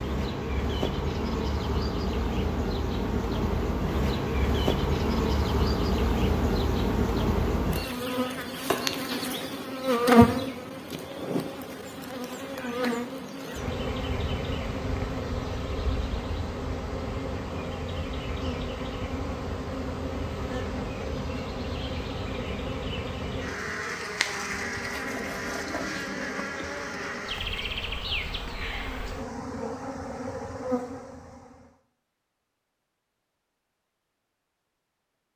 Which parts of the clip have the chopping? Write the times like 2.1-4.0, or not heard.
8.3-8.8, 24.6-26.0.